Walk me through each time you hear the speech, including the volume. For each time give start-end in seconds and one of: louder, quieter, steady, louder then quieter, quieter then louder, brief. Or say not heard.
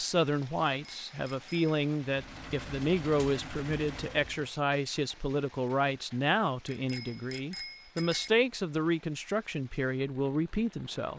0.0-11.1 steady.